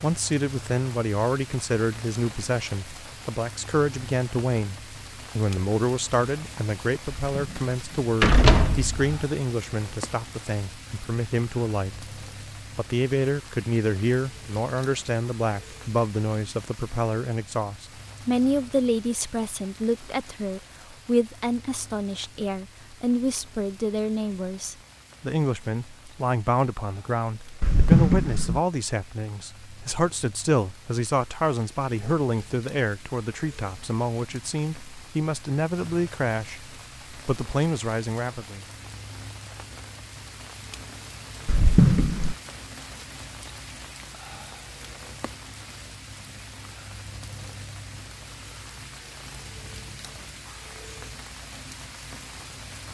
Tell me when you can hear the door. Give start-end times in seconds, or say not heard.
7.2-9.2, 27.6-28.6, 41.5-42.4.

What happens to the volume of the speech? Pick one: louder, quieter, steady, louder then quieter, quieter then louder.
steady.